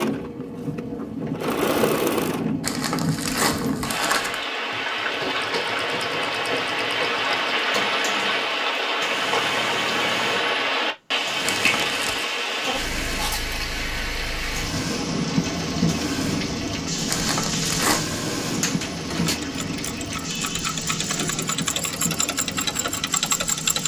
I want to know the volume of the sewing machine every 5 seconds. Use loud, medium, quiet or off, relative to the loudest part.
loud, medium, medium, medium, loud.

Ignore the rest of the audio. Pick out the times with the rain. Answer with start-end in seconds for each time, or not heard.
0.0-23.8.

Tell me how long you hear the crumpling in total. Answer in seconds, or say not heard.
4 s.